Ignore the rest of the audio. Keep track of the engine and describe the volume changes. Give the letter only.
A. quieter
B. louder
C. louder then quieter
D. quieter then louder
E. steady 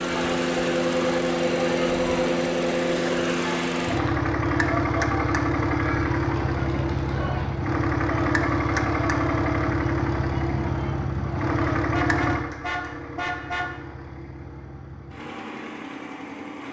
A.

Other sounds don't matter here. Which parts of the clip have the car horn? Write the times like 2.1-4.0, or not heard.
11.8-13.7.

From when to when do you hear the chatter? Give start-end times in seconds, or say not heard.
0.0-11.9.